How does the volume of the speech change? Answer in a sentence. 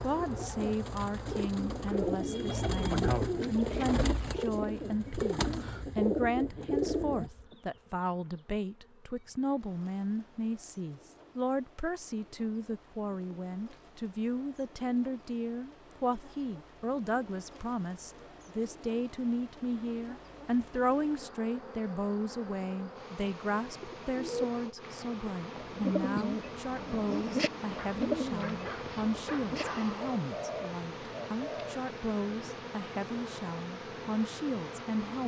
The volume of the speech stays about the same.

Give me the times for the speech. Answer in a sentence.
The speech can be heard from 0.0 to 35.2 s.